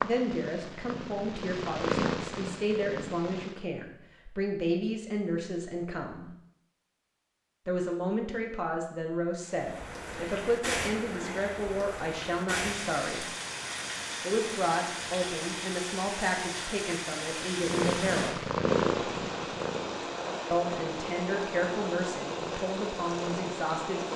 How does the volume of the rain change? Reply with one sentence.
The loudness of the rain stays about the same.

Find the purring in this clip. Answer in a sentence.
The purring can be heard from 0.0 to 3.6 s and from 17.6 to 24.1 s.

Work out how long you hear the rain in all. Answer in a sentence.
The rain can be heard for 15 seconds in total.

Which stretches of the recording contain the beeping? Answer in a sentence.
You can't hear the beeping here.